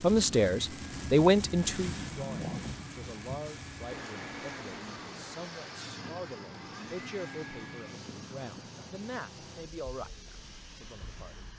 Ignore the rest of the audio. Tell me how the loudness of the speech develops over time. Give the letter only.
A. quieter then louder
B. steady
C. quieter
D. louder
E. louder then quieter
C.